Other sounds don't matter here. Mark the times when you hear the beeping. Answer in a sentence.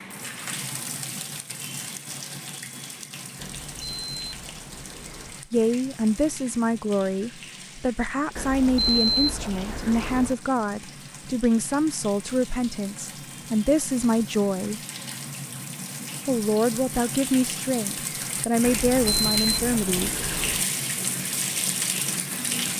You can hear the beeping from 3.4 to 5.4 s, from 8.3 to 10.3 s and from 18.6 to 20.6 s.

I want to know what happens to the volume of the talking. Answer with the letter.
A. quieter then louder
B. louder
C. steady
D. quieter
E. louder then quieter
C.